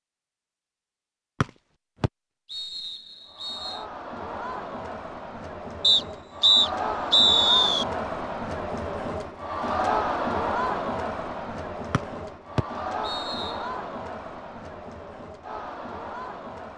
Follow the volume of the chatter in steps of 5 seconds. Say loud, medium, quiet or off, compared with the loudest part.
medium, loud, loud, medium.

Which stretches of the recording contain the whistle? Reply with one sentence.
You can hear the whistle from 1.4 to 3.8 s, from 5.8 to 7.8 s and from 11.9 to 13.6 s.